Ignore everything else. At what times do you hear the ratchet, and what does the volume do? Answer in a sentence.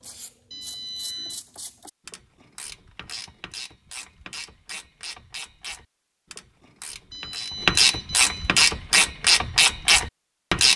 You can hear the ratchet from 0.0 to 10.7 s, getting louder.